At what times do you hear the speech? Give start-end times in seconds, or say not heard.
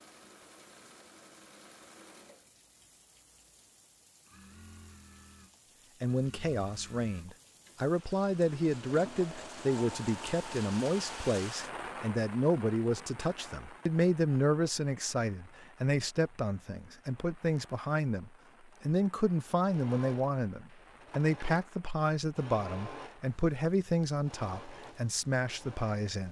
6.0-26.2.